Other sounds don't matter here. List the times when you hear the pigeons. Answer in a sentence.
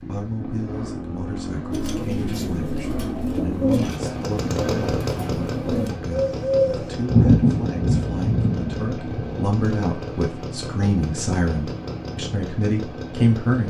The pigeons can be heard from 1.7 to 7.0 s.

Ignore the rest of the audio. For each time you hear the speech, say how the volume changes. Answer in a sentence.
The speech can be heard from 0.1 to 13.6 s, getting louder.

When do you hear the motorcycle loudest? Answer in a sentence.
The loudest moment of the motorcycle is at 5 seconds.